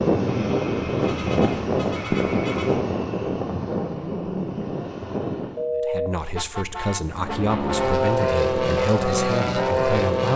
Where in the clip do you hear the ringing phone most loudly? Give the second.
6 s.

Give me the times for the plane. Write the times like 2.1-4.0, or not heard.
0.0-5.6, 7.0-10.3.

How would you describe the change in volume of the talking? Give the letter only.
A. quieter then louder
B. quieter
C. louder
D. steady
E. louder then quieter
D.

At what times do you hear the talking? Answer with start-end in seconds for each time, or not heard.
5.8-10.3.